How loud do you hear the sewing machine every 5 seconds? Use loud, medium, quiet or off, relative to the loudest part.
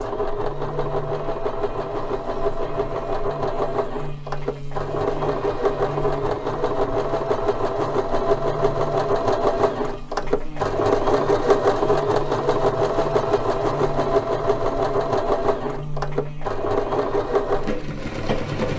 medium, loud, loud, loud.